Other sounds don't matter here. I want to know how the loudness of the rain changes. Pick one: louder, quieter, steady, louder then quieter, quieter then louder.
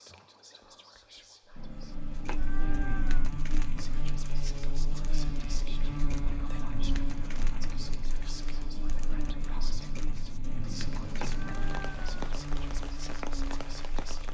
steady.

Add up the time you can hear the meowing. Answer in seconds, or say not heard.
4 s.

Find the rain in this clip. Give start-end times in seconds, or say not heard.
2.0-14.3.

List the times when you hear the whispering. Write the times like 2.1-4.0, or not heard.
0.0-1.9, 3.8-14.3.